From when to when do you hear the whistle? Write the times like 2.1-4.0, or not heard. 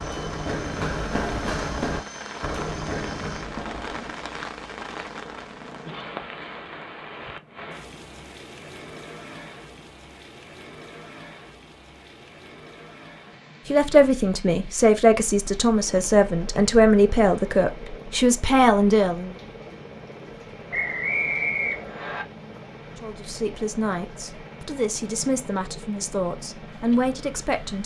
20.7-22.2.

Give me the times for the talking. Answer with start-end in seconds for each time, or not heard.
13.7-19.4, 22.9-27.8.